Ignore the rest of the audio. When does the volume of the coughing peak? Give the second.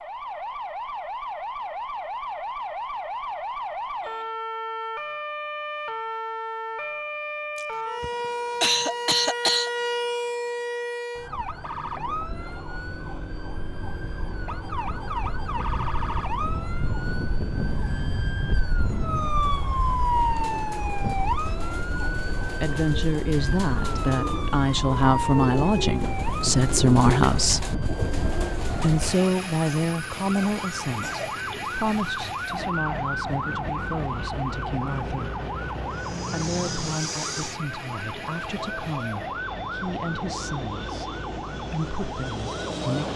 9 s.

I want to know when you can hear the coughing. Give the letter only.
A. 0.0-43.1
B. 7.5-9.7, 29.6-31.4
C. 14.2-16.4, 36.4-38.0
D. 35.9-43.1
B.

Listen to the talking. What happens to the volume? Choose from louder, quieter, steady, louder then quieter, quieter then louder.
quieter.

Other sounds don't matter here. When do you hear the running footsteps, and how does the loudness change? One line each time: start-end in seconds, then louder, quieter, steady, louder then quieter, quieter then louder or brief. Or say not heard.
not heard.